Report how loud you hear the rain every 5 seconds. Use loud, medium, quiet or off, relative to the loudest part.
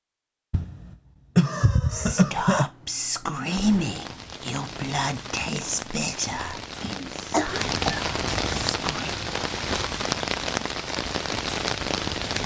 medium, loud, loud.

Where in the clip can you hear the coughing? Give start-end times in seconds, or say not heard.
0.5-2.7, 7.3-8.1.